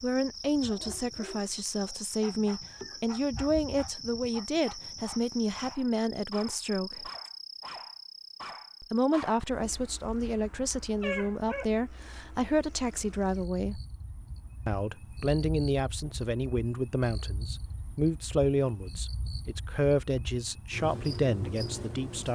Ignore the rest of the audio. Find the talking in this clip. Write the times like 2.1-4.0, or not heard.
0.0-7.1, 8.8-13.8, 14.7-22.3.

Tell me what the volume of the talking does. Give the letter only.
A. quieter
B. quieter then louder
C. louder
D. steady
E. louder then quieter
D.